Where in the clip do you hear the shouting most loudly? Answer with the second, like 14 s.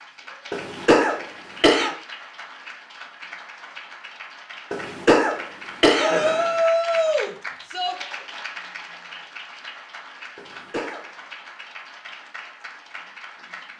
7 s.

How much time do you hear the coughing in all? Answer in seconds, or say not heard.
4 s.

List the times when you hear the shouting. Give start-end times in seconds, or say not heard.
6.0-8.0.